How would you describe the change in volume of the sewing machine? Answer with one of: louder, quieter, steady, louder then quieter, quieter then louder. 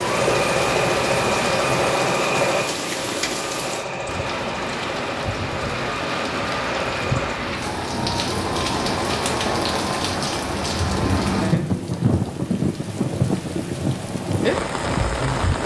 quieter.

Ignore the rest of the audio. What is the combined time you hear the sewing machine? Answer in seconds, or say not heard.
7 s.